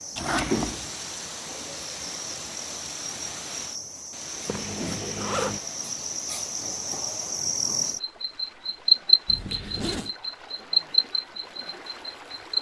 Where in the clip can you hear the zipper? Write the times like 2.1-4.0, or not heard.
0.1-0.9, 4.5-5.6, 9.2-10.1.